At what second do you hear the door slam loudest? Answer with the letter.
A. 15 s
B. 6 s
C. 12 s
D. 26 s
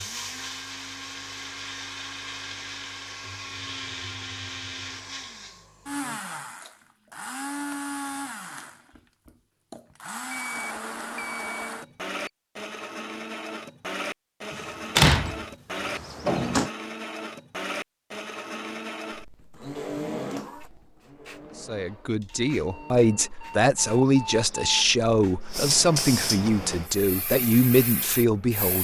A.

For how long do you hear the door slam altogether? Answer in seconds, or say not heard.
2 s.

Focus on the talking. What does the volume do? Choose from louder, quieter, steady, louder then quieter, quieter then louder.
steady.